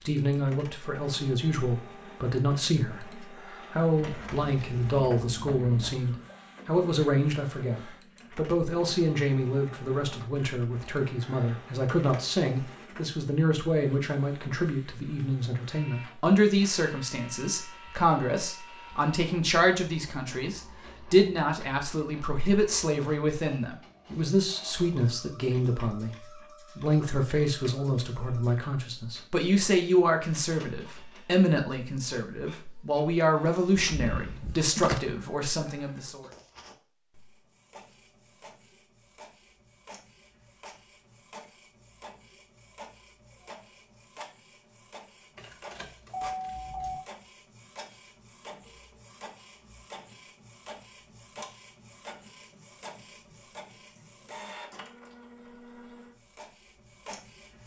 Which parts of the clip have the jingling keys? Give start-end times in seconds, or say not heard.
4.0-5.9, 33.8-35.0, 45.4-47.0.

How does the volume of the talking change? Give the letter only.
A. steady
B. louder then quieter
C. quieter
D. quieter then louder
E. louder
A.